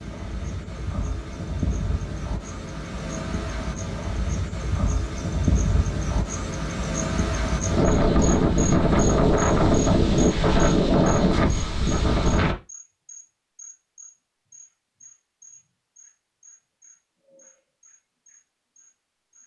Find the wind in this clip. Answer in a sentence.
The wind can be heard from 0.0 to 12.6 s.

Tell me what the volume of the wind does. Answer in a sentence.
The loudness of the wind goes up.